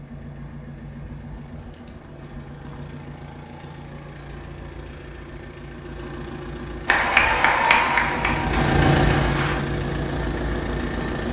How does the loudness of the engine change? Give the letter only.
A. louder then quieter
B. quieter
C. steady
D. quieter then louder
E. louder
E.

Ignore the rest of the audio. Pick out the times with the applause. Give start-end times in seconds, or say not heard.
6.8-9.6.